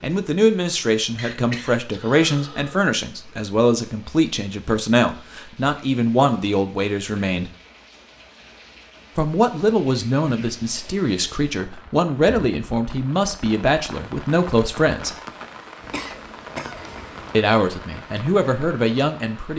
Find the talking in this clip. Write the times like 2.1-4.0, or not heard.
0.0-7.5, 9.2-15.2, 17.3-19.5.